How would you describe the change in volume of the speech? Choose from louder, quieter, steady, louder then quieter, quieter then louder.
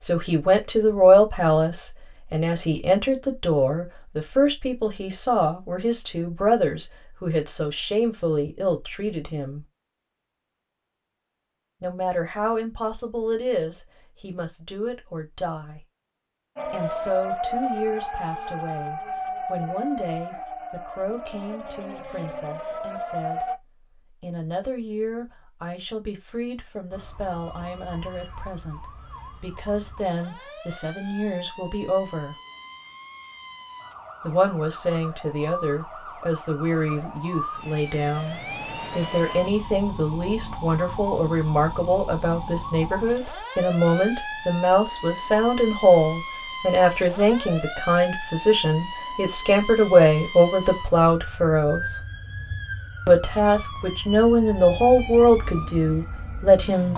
quieter then louder.